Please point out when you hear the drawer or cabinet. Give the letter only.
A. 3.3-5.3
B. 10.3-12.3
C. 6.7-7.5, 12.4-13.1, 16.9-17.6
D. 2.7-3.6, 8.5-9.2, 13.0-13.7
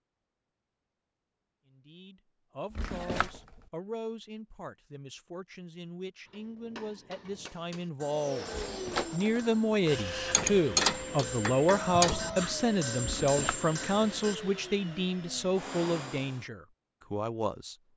D.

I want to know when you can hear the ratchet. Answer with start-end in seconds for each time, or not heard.
10.3-12.3.